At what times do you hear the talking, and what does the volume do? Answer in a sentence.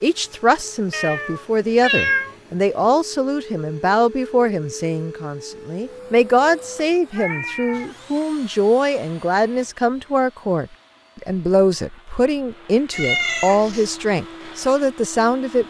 The talking can be heard from 0.0 to 15.6 s, at a steady volume.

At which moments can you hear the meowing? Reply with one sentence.
You can hear the meowing from 0.9 to 2.4 s, from 7.1 to 8.2 s and from 12.9 to 13.9 s.